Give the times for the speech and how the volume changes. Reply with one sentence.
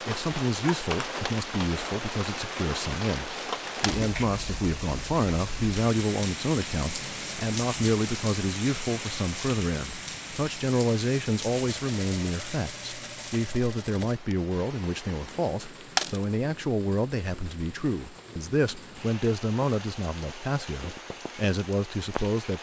You can hear the speech from 0.1 to 22.5 s, at a steady volume.